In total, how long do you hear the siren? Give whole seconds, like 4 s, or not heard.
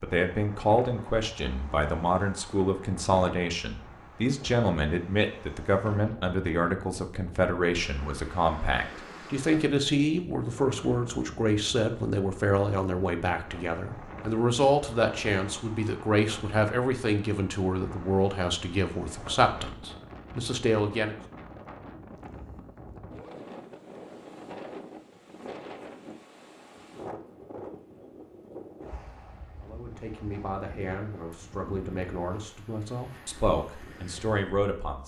not heard.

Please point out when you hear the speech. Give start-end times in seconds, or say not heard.
0.0-21.1, 29.6-35.0.